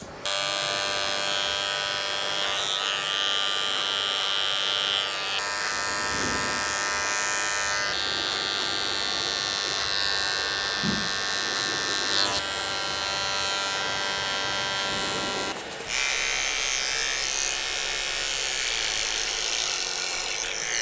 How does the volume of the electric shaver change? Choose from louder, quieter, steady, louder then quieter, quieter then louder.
steady.